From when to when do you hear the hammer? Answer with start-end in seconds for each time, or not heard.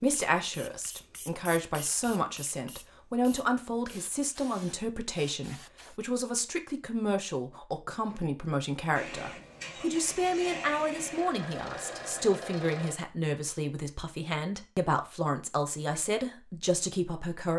not heard.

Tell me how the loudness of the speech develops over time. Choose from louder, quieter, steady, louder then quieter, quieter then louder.
steady.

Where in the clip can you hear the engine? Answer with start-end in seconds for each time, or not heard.
8.9-12.9.